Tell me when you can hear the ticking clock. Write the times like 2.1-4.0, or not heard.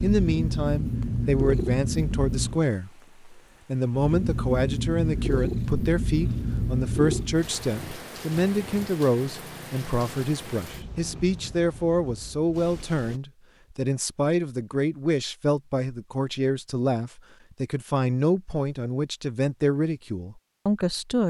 not heard.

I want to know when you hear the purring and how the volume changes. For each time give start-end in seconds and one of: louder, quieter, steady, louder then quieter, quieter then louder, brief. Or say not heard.
0.0-2.6 brief
4.0-11.9 quieter.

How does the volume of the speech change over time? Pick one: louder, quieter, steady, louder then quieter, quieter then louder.
steady.